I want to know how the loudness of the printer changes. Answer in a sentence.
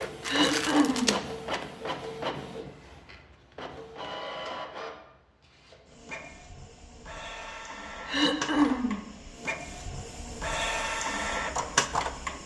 The volume of the printer goes down, then up.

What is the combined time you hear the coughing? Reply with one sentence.
You can hear the coughing for 2 seconds altogether.